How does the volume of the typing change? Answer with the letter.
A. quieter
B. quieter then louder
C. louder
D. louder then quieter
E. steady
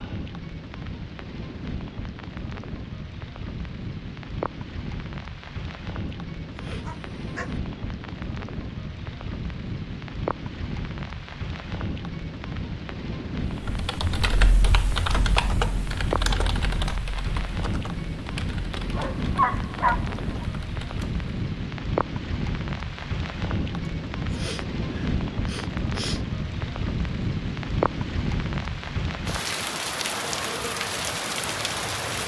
A.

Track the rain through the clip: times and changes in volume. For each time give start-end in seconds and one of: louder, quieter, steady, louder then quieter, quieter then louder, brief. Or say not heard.
0.0-32.2 louder.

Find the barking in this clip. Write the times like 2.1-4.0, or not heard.
6.8-7.6, 18.9-20.4.